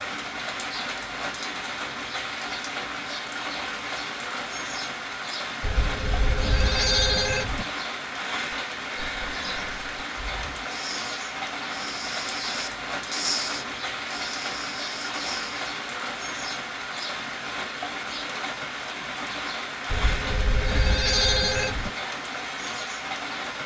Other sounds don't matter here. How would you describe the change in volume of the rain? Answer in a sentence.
The loudness of the rain stays about the same.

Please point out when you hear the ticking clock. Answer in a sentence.
You can't hear the ticking clock here.